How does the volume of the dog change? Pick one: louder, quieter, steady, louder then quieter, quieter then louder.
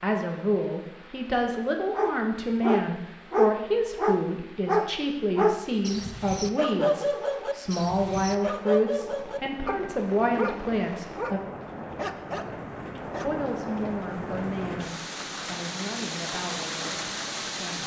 quieter.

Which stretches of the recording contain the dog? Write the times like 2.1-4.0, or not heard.
1.9-13.4.